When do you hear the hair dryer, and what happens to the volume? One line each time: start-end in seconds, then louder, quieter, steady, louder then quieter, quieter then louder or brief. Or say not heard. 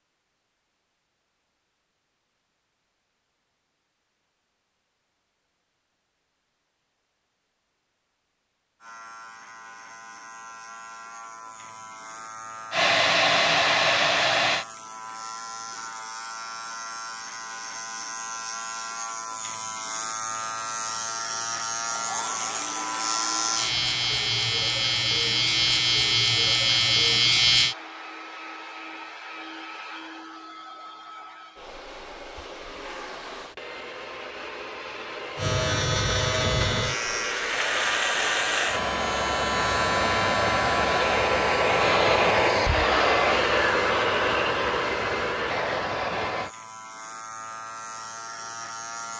12.7-14.7 brief
21.9-46.5 louder.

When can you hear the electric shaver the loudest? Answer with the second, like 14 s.
27 s.